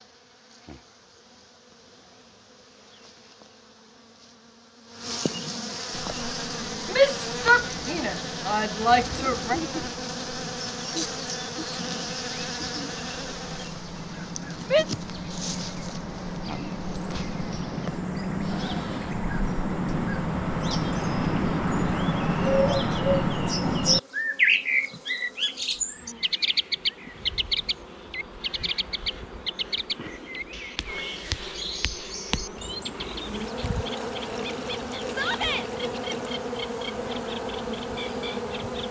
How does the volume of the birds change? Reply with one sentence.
The volume of the birds goes up, then down.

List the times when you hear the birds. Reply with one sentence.
You can hear the birds from 5.9 to 38.8 s.